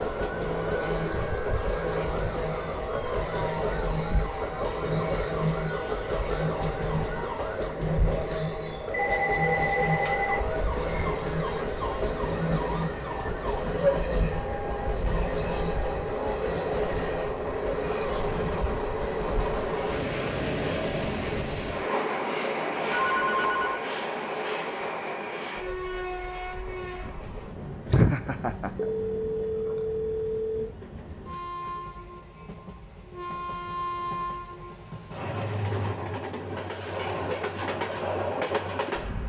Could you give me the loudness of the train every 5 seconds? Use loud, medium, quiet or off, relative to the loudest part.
loud, loud, loud, loud, loud, medium, medium, loud.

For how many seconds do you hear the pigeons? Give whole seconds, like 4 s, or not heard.
not heard.